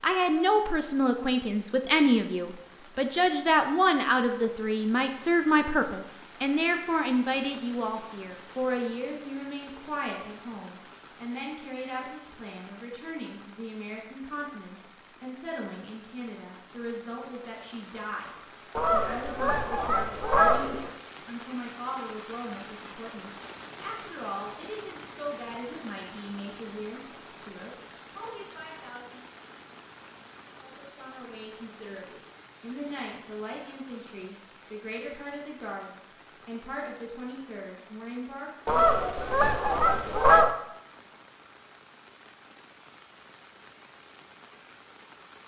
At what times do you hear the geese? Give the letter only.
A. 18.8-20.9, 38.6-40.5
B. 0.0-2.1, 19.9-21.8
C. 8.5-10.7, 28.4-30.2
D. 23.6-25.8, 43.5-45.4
A.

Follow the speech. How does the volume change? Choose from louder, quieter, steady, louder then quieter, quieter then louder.
quieter.